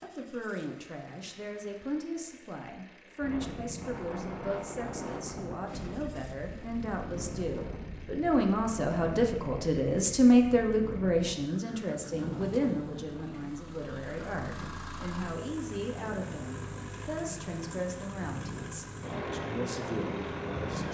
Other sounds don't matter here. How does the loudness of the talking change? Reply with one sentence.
The loudness of the talking goes up, then down.